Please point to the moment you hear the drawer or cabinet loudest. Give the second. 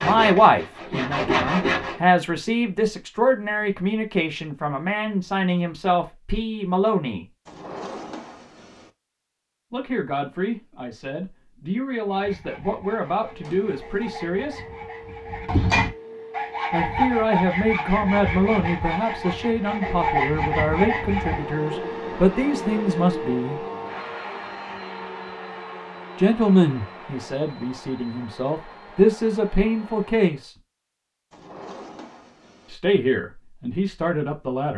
8 s.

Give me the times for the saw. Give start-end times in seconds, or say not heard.
0.0-1.9, 12.1-21.6.